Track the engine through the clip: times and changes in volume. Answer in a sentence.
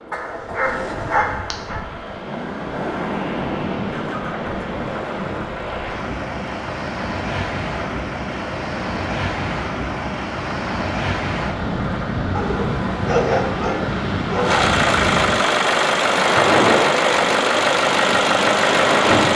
You can hear the engine from 0.0 to 19.3 s, getting louder.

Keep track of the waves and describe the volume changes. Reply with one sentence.
The volume of the waves goes up.